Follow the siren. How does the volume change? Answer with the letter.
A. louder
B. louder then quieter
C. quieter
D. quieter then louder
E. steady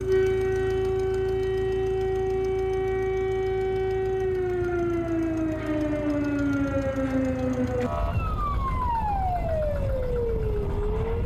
E.